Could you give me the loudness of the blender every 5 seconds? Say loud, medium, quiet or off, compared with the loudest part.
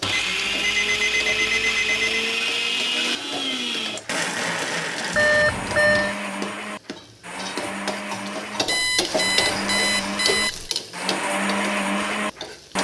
loud, medium, loud.